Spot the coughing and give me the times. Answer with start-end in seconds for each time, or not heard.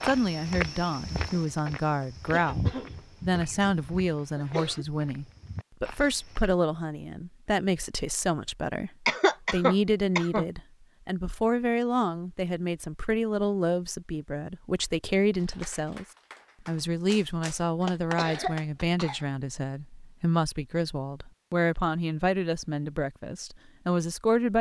2.3-4.8, 9.1-10.4, 17.8-19.2.